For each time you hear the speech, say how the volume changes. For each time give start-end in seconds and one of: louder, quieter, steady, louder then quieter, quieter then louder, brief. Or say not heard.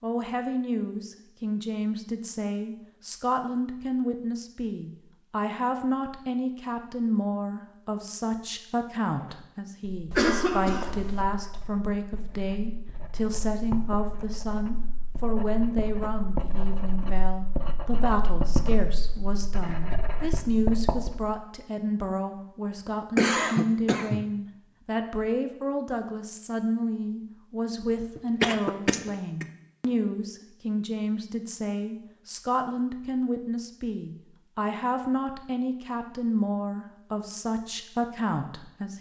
0.0-38.9 steady.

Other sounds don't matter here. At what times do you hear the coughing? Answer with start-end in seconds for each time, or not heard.
10.1-11.2, 23.1-24.2, 28.1-29.4.